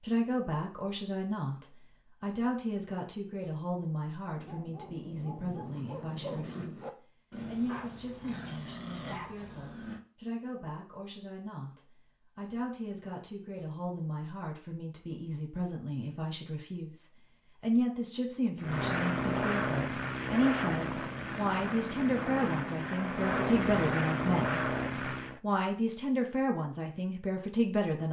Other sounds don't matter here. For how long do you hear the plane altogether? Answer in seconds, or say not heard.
7 s.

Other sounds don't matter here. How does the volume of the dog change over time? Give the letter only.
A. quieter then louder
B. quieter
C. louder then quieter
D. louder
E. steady
E.